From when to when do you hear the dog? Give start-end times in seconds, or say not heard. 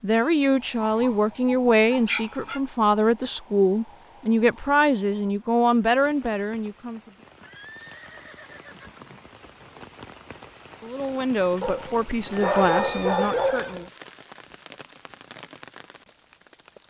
0.8-2.6, 11.6-13.9.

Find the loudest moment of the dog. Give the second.
13 s.